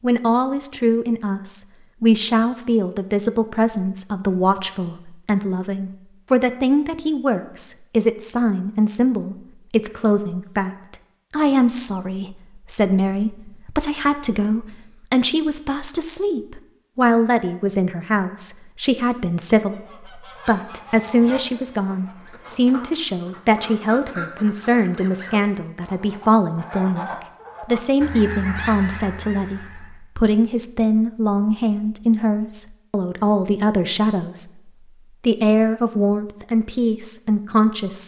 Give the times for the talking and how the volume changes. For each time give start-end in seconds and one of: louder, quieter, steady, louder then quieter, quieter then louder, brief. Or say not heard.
0.0-38.0 steady.